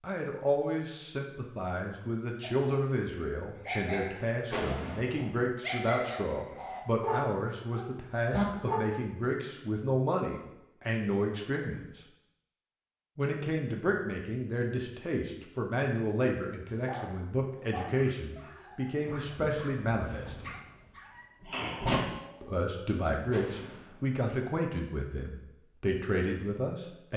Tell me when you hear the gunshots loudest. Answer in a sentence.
The loudest moment of the gunshots is at 5 seconds.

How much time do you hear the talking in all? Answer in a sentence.
You can hear the talking for 24 seconds altogether.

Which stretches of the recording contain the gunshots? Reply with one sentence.
The gunshots can be heard from 4.5 to 5.2 s and from 23.3 to 24.2 s.